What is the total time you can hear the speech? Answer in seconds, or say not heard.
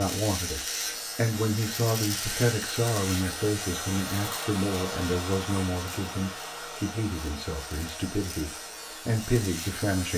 10 s.